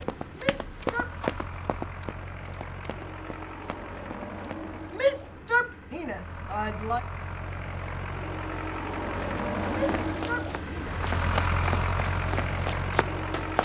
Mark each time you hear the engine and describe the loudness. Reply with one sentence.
The engine can be heard from 0.0 to 13.6 s, getting louder.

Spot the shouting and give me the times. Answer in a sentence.
You can hear the shouting from 0.3 to 1.1 s, from 4.9 to 7.0 s and from 9.7 to 11.0 s.